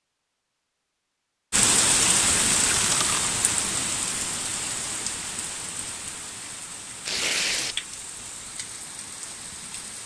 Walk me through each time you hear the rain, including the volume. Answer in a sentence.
You can hear the rain from 1.5 to 10.0 s, getting quieter.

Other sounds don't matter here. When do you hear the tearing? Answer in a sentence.
The tearing can be heard from 2.5 to 3.3 s and from 7.0 to 7.8 s.